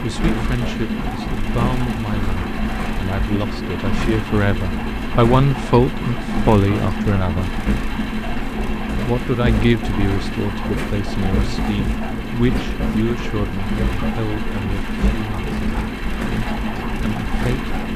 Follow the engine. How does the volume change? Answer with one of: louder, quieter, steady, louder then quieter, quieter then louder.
steady.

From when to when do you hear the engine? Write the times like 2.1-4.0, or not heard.
0.0-17.9.